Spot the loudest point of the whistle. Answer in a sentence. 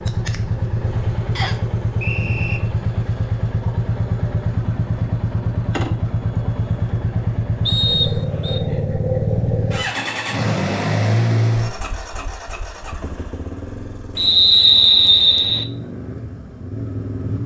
The loudest moment of the whistle is at 15 seconds.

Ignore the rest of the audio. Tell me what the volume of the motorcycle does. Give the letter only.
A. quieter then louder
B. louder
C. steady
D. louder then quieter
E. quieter
E.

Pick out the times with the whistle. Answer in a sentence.
The whistle can be heard from 1.4 to 2.6 s, from 7.7 to 8.6 s and from 14.2 to 15.7 s.